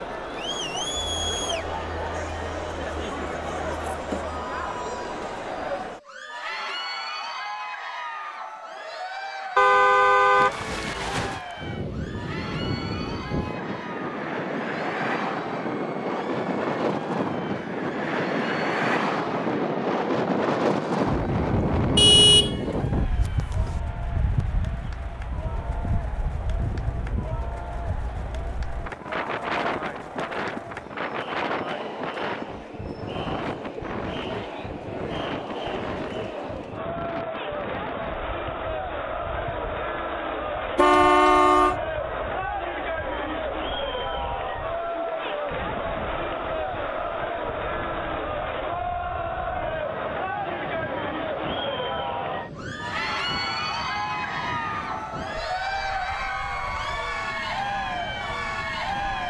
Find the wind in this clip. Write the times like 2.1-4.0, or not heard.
10.3-59.2.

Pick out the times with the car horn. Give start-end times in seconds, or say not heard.
9.6-11.4, 21.9-23.7, 40.8-41.8.